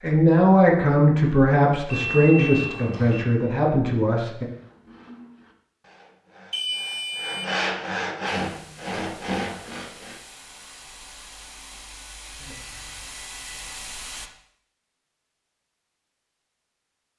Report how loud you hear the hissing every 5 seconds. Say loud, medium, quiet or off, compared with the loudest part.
off, medium, loud, off.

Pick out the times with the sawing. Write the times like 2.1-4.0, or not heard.
4.4-10.2.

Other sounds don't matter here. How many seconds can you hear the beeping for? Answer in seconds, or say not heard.
4 s.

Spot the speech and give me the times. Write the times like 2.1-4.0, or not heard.
0.0-4.5.